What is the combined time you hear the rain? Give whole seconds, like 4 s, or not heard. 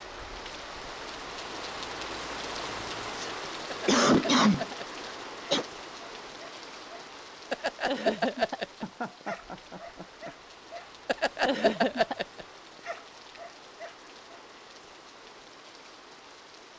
17 s.